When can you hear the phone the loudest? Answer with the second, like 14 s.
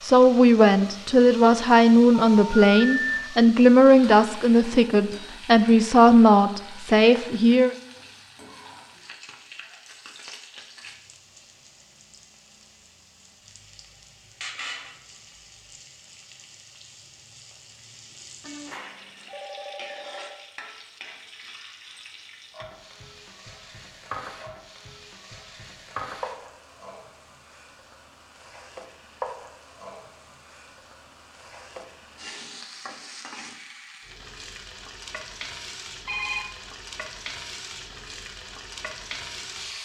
3 s.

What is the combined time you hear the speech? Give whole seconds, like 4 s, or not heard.
8 s.